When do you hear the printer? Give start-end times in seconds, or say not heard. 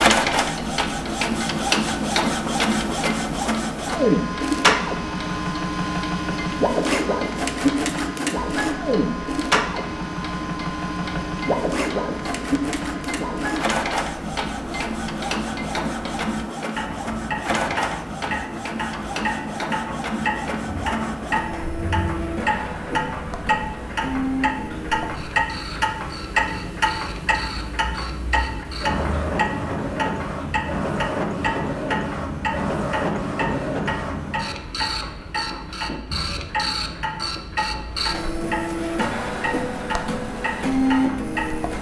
0.0-41.7.